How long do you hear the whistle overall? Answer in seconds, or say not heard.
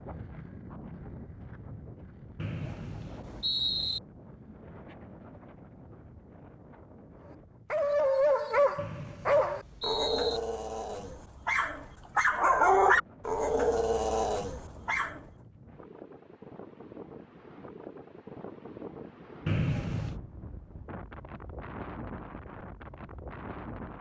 4 s.